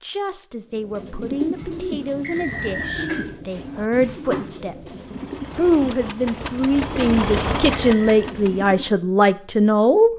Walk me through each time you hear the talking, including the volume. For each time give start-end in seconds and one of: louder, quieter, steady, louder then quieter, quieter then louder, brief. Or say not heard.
0.0-10.1 louder.